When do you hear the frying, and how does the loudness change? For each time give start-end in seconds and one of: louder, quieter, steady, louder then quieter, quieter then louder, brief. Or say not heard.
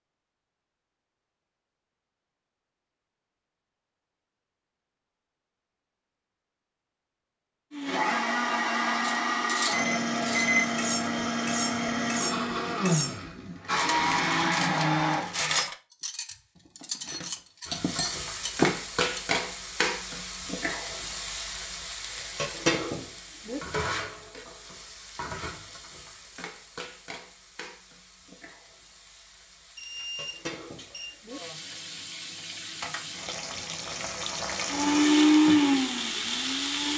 17.6-36.9 quieter then louder.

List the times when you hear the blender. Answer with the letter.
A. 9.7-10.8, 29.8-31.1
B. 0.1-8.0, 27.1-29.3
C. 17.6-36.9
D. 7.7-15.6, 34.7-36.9
D.